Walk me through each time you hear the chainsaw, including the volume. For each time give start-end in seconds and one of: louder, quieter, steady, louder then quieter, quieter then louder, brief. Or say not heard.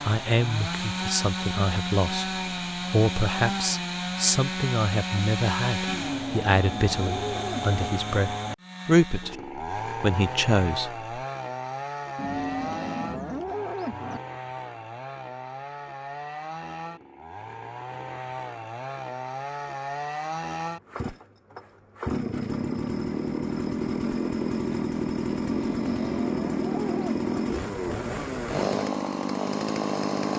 0.0-30.3 quieter then louder.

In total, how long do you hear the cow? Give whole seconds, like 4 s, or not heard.
6 s.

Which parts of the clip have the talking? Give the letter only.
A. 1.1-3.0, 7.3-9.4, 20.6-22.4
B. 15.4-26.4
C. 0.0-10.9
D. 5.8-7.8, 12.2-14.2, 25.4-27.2
C.